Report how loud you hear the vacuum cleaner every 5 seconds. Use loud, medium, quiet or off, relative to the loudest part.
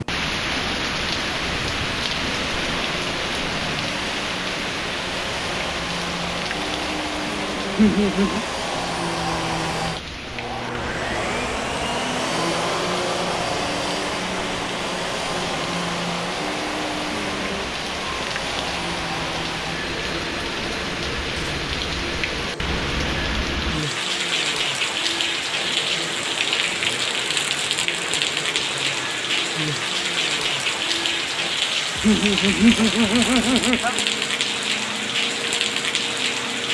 medium, loud, loud, loud, medium, medium, medium, medium.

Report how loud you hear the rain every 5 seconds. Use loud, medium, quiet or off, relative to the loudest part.
loud, medium, medium, medium, loud, loud, loud, loud.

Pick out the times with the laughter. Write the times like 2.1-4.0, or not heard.
7.8-8.4, 32.0-34.0.